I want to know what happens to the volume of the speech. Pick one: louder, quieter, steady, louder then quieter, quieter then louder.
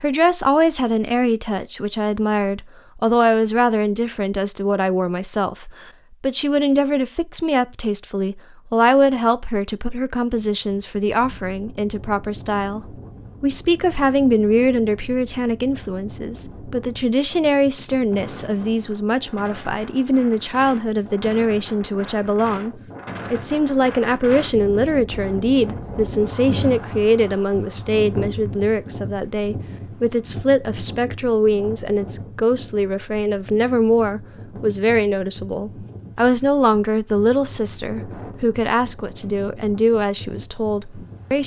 steady.